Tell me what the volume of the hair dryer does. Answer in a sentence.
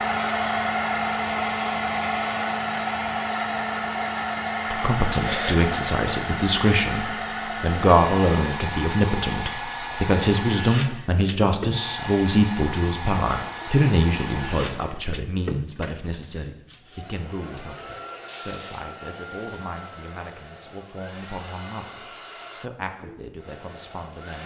The loudness of the hair dryer goes down.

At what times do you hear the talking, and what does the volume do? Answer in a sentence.
The talking can be heard from 4.7 to 24.4 s, getting quieter.